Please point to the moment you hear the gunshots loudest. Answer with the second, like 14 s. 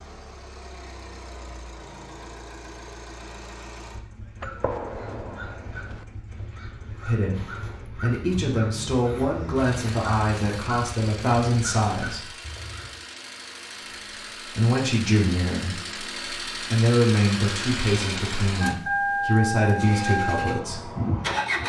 5 s.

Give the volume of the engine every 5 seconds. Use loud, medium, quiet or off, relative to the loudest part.
quiet, quiet, quiet, loud, loud.